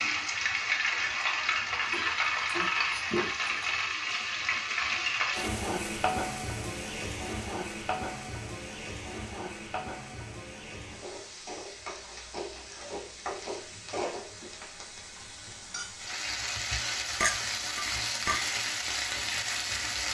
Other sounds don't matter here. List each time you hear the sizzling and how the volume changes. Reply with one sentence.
You can hear the sizzling from 0.0 to 20.1 s, getting quieter then louder.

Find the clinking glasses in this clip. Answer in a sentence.
The clinking glasses can be heard from 1.9 to 3.9 s and from 17.2 to 18.4 s.